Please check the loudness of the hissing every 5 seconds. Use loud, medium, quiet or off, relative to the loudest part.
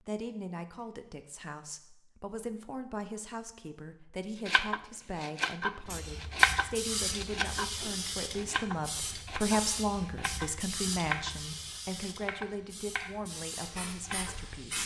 off, loud, loud.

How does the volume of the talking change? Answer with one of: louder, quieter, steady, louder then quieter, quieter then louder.
louder then quieter.